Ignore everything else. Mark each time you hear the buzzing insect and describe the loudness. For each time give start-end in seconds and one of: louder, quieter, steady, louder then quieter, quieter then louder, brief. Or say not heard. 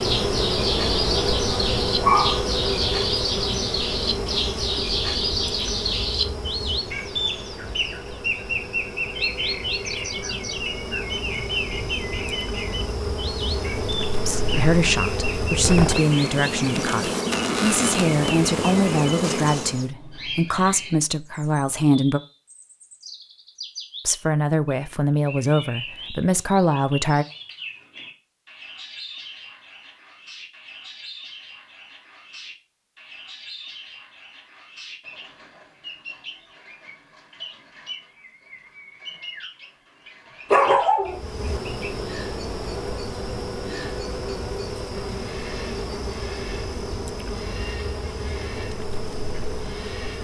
0.0-19.9 quieter then louder
41.0-50.2 steady.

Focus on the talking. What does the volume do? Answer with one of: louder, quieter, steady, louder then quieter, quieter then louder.
steady.